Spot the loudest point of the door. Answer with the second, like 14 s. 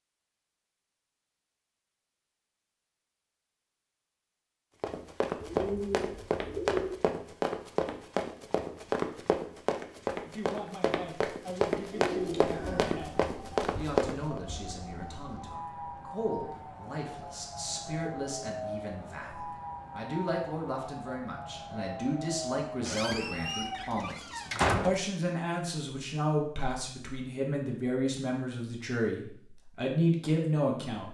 25 s.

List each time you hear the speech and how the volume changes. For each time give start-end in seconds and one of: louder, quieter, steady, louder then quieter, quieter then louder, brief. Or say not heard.
10.2-31.0 louder.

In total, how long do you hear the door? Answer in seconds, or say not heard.
2 s.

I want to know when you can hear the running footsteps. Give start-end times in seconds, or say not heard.
4.8-14.4.